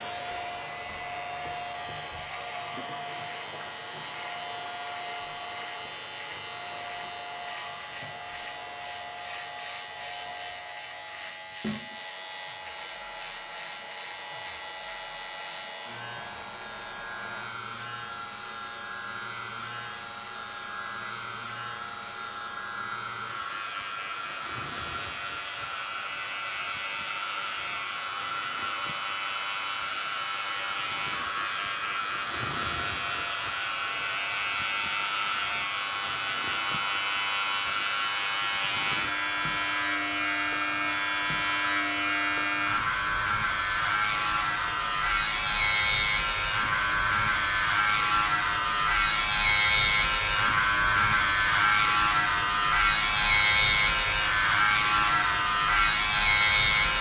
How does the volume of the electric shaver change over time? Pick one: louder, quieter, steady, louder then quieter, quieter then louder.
louder.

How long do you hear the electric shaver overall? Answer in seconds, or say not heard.
57 s.